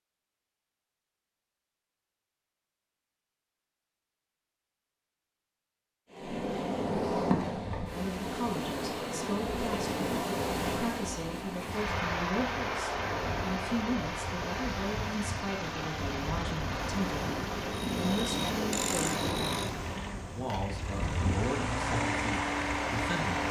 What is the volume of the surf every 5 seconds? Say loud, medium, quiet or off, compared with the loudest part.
off, loud, loud, loud, loud.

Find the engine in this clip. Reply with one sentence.
The engine can be heard from 15.7 to 23.4 s.